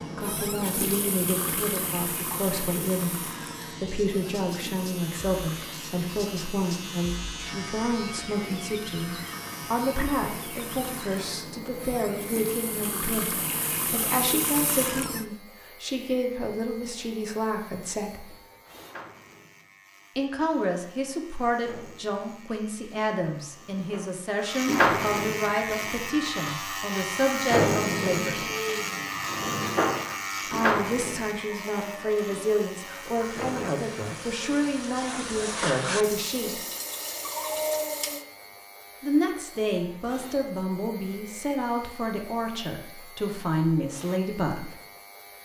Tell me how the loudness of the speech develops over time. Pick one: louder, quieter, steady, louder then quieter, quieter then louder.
steady.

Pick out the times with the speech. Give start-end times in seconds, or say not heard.
0.1-18.4, 20.1-28.4, 30.4-36.6, 39.0-44.8.